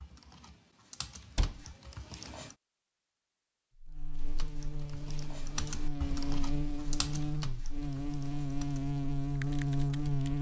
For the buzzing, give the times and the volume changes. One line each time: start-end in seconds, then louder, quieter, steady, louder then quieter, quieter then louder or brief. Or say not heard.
3.8-10.3 louder.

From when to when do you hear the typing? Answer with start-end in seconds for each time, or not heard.
0.0-2.5, 4.2-10.3.